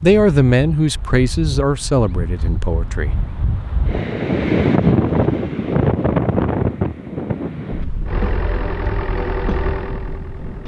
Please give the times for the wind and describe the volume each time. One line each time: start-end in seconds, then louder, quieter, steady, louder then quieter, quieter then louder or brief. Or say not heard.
0.0-10.6 louder then quieter.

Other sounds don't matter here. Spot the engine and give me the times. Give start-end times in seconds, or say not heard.
8.1-10.6.